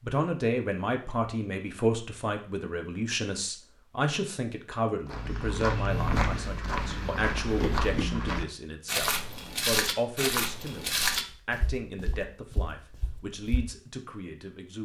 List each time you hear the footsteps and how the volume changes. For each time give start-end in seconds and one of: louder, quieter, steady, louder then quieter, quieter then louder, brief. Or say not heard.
5.0-13.7 quieter.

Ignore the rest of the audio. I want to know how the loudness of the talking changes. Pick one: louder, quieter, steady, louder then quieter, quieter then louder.
quieter.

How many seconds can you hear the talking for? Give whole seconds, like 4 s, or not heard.
15 s.